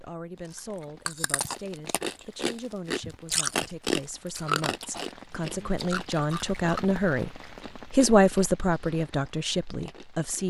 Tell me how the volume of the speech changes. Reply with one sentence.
The volume of the speech goes up.